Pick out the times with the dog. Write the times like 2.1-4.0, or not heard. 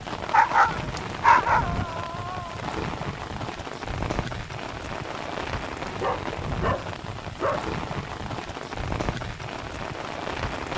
0.3-2.6, 6.0-7.7.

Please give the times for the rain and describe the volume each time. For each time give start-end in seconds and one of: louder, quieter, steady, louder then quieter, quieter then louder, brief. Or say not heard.
0.0-10.7 steady.